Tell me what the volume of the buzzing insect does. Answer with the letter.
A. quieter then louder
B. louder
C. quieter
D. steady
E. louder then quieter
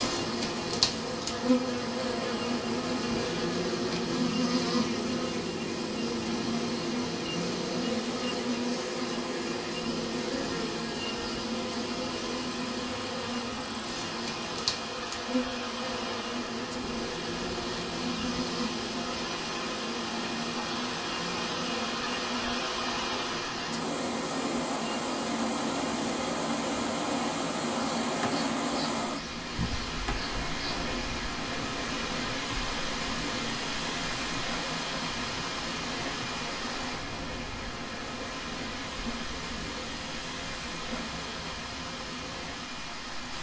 C.